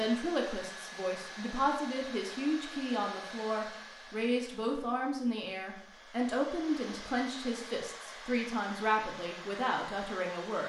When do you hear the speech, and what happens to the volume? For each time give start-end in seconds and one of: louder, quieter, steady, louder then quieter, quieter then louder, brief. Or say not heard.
0.0-10.6 steady.